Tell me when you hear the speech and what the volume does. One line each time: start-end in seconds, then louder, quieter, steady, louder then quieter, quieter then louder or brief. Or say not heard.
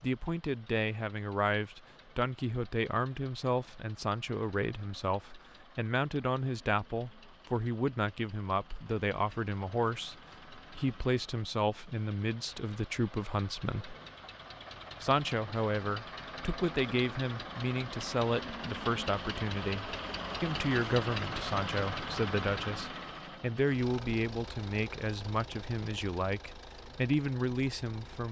0.0-13.9 steady
15.0-28.2 steady.